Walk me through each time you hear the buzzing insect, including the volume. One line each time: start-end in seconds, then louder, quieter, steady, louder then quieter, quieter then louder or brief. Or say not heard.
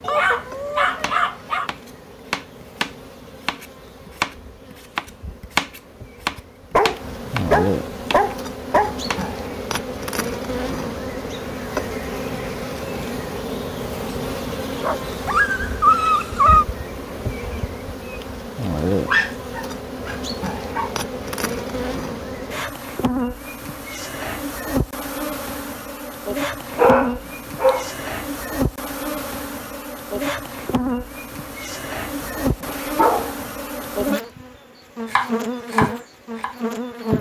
0.0-37.1 louder.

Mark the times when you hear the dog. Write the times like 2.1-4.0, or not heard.
0.0-1.7, 6.7-8.9, 14.8-16.6, 19.1-20.9, 26.7-27.9, 32.4-33.4.